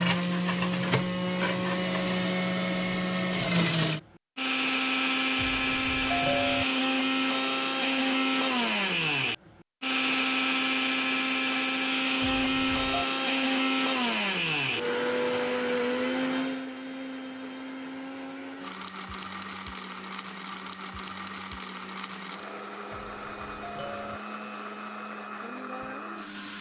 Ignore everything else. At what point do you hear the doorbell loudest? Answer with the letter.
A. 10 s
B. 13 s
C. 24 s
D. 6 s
D.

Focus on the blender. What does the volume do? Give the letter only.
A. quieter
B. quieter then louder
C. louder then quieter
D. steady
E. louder
A.